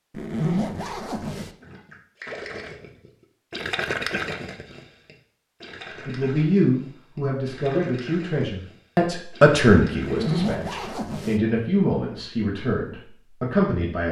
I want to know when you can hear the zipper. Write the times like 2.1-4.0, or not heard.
0.1-1.5, 10.0-11.4.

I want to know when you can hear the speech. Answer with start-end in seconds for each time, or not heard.
6.0-14.0.